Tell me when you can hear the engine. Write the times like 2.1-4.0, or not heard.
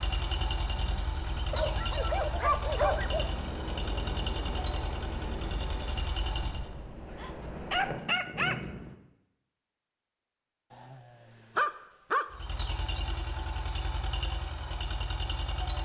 0.0-6.7, 12.3-15.8.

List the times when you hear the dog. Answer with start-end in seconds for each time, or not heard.
1.5-3.3, 7.2-8.7, 10.7-12.2.